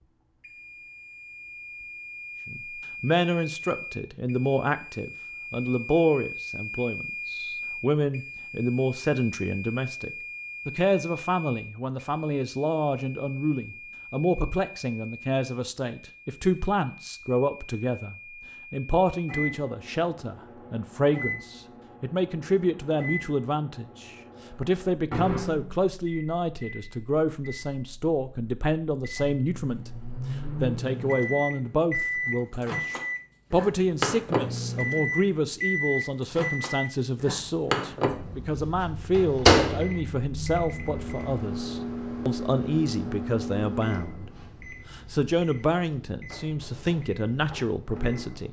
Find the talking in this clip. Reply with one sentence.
The talking can be heard from 2.5 to 29.9 s, from 30.6 to 44.2 s and from 44.9 to 48.4 s.